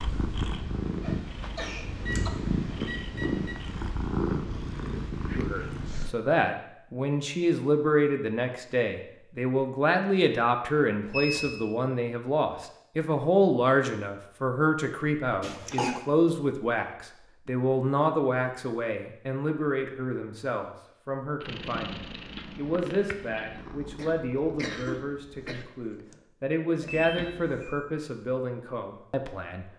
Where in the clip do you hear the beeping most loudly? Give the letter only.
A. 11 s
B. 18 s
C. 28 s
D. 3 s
A.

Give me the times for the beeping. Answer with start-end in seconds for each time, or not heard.
1.9-3.5, 11.0-11.6, 26.8-27.8.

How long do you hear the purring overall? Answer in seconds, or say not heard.
11 s.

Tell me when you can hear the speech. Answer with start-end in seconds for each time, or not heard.
5.3-29.7.